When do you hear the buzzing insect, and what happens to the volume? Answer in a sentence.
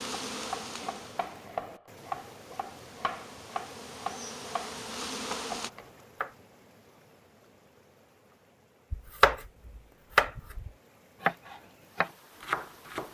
The buzzing insect can be heard from 0.0 to 5.7 s, getting quieter then louder.